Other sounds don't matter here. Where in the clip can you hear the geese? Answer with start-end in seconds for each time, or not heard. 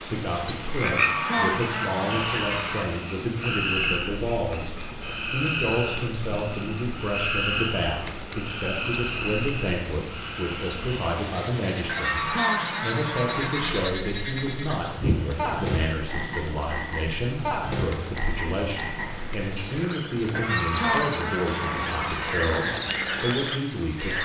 0.8-2.9, 11.8-13.9, 20.4-22.4.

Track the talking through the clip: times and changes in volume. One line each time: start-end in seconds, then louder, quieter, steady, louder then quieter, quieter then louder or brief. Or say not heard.
0.1-24.2 steady.